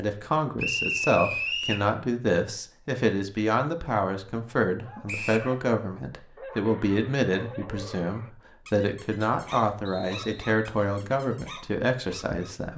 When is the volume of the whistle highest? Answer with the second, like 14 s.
1 s.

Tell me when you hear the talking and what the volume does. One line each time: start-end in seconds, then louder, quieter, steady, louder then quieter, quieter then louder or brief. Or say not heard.
0.0-12.7 steady.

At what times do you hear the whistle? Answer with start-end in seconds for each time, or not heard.
0.6-1.9, 5.0-5.5, 9.8-10.5.